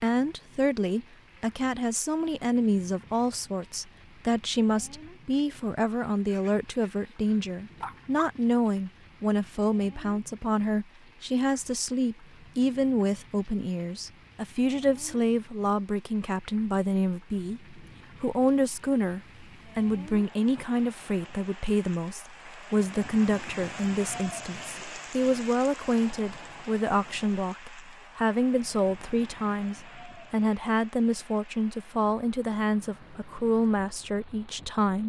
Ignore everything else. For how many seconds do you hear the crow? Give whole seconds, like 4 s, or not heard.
not heard.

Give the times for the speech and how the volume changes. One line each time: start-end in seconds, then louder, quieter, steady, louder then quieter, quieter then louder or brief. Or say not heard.
0.0-35.0 steady.